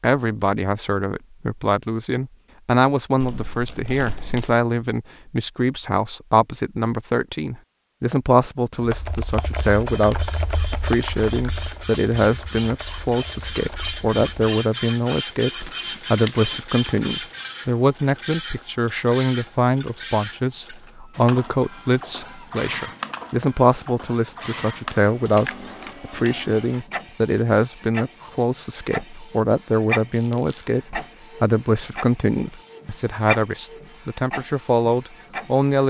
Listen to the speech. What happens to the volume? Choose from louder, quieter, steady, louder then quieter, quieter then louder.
steady.